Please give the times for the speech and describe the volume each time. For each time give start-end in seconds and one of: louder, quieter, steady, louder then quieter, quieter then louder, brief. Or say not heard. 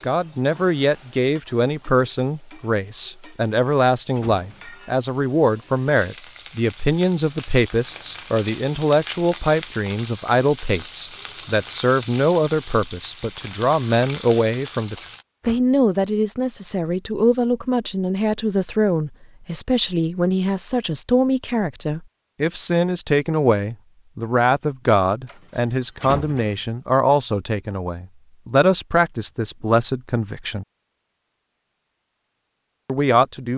0.0-30.6 steady
32.9-33.5 brief.